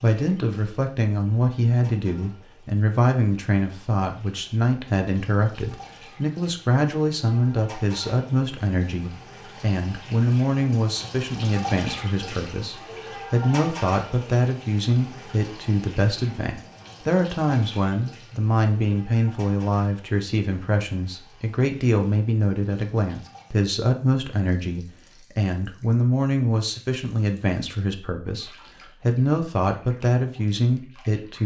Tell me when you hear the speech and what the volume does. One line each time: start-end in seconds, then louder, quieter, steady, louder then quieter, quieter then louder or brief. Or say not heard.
0.0-31.4 steady.